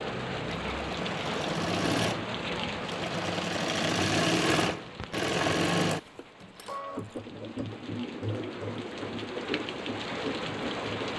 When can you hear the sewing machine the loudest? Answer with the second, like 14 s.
4 s.